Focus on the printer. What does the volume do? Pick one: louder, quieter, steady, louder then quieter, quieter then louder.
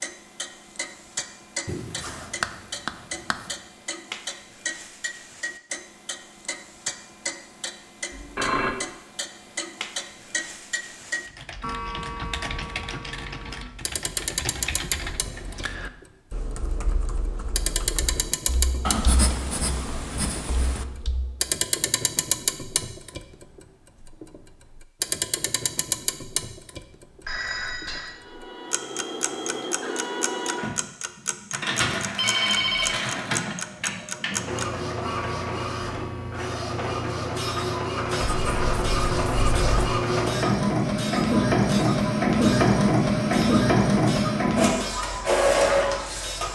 louder.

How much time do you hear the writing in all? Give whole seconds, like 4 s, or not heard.
5 s.